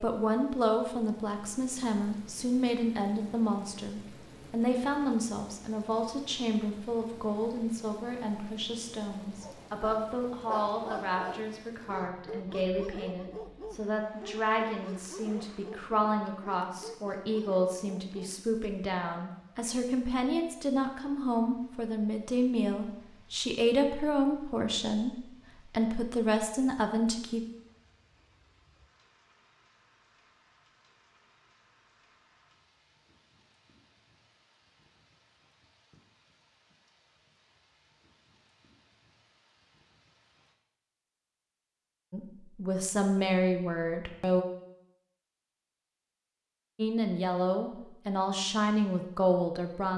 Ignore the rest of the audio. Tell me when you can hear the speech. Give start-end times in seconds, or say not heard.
0.0-27.4, 42.1-44.5, 46.8-49.9.